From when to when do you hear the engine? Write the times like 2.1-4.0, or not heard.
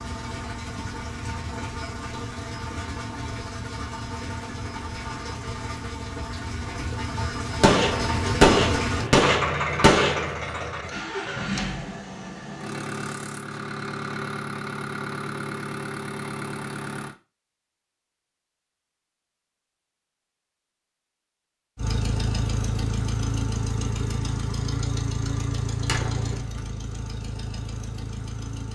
0.0-17.1, 21.8-28.7.